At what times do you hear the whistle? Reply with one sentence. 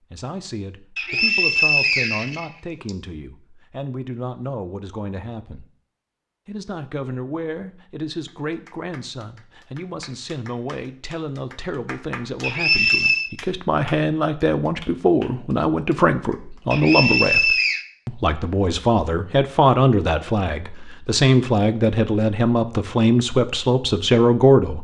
The whistle can be heard from 0.9 to 2.9 s, from 12.4 to 13.3 s and from 16.7 to 17.9 s.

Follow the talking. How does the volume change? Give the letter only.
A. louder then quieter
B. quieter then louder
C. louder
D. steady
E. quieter
C.